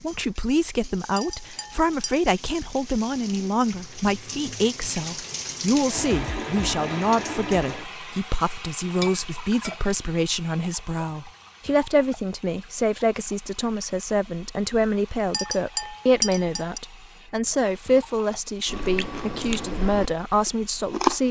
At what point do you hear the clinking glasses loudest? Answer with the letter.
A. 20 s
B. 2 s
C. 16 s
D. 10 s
C.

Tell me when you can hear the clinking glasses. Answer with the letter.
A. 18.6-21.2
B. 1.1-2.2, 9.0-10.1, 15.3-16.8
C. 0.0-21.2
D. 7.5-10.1
B.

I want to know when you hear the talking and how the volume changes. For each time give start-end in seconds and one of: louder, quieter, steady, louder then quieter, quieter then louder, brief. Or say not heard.
0.0-21.2 steady.